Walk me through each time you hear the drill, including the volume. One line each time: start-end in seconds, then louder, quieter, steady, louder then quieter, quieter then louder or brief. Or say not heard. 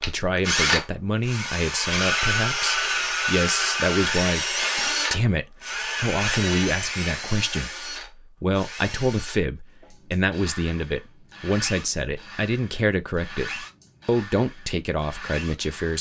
0.0-15.9 quieter.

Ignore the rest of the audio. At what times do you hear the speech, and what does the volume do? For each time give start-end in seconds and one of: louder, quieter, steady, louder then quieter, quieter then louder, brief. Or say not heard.
0.0-15.9 steady.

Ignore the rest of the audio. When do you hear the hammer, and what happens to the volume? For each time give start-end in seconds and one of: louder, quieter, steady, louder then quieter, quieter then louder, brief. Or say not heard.
not heard.